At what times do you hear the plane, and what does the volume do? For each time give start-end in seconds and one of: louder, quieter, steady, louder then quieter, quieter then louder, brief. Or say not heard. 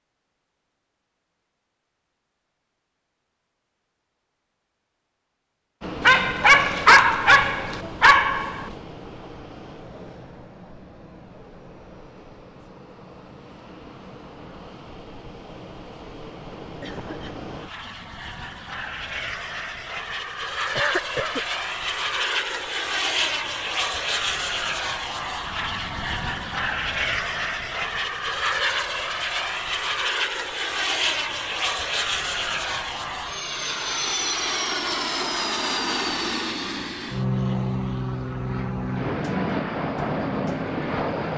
5.8-41.3 louder.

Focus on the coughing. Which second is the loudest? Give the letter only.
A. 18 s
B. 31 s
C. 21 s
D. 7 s
C.